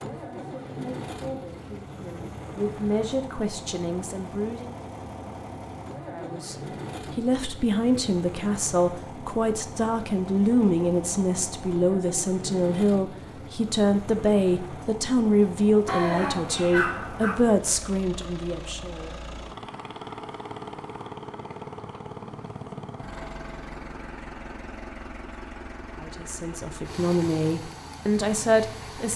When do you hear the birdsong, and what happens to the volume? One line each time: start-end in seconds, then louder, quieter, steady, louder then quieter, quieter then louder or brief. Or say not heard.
not heard.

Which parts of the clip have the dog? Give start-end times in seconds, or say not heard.
15.8-17.4.